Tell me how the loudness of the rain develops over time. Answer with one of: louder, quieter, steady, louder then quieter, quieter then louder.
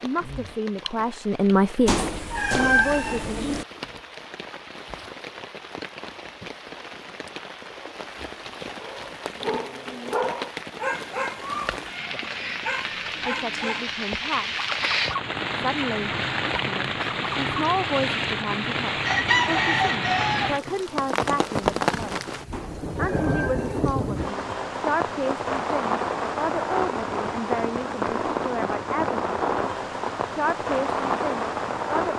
louder.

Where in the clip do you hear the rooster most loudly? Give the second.
19 s.